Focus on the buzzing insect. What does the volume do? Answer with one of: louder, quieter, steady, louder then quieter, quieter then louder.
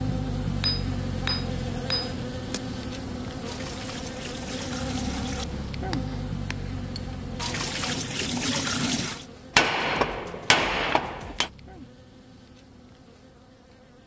quieter.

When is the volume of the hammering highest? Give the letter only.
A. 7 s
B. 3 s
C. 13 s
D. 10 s
D.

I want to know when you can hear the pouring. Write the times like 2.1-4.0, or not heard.
3.5-5.5, 7.3-9.2.